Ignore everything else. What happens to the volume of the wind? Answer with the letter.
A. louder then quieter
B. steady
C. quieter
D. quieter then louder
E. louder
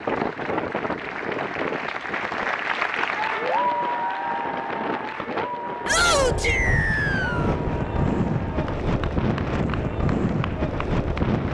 D.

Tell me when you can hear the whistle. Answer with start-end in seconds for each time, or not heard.
6.4-7.5.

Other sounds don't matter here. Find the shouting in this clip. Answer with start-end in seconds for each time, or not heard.
5.8-6.6.